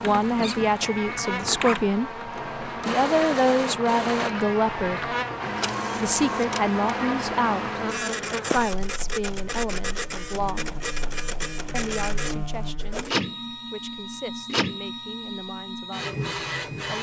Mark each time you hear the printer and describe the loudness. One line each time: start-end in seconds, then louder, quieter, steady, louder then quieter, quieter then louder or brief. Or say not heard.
0.0-16.9 steady.